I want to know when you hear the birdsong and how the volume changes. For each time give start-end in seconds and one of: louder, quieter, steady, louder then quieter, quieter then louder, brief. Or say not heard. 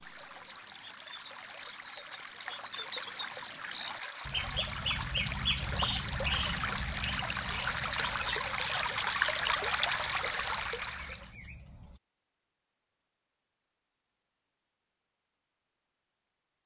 0.0-12.0 louder then quieter.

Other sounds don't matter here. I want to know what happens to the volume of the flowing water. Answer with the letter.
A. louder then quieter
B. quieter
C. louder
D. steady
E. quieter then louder
C.